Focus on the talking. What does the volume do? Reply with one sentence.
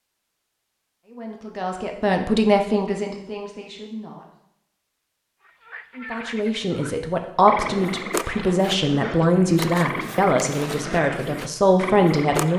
The loudness of the talking goes down, then up.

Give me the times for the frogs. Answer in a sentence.
You can hear the frogs from 5.4 to 12.5 s.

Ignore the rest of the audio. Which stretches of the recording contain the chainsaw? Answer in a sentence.
You can't hear the chainsaw here.